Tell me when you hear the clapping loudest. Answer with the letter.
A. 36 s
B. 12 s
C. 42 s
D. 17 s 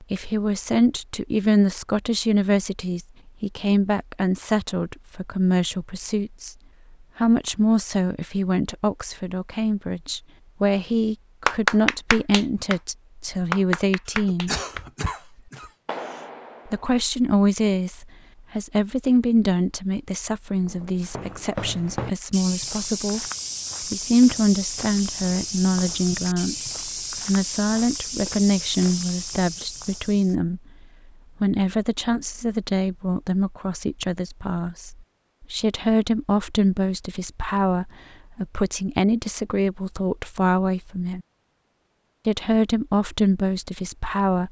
B.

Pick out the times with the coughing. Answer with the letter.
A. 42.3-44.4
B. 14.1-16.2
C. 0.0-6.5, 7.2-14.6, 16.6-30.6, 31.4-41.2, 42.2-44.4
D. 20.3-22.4
B.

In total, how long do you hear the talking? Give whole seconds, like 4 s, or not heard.
40 s.